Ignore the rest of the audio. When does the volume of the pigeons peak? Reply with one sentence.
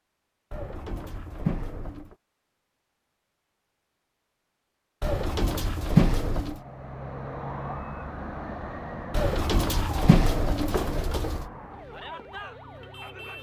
The volume of the pigeons peaks at 6 seconds.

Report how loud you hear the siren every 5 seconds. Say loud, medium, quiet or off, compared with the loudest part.
off, loud, loud.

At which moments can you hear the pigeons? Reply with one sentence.
You can hear the pigeons from 0.5 to 2.1 s, from 5.0 to 6.6 s and from 9.1 to 11.4 s.